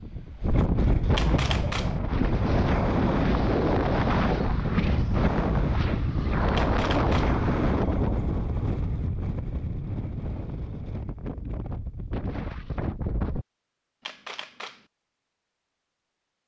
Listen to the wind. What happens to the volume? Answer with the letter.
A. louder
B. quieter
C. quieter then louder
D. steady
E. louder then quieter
B.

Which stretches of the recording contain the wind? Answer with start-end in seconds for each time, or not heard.
0.0-13.4.